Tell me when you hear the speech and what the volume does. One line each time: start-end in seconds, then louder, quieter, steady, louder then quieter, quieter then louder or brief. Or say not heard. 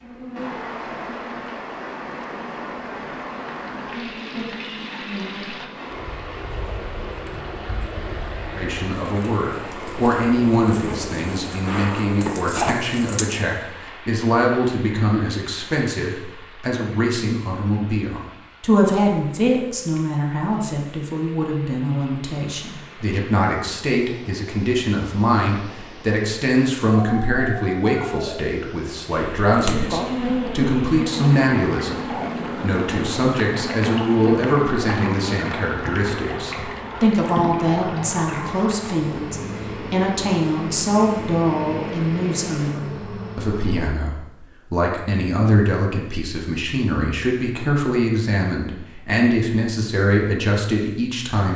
8.6-51.5 steady.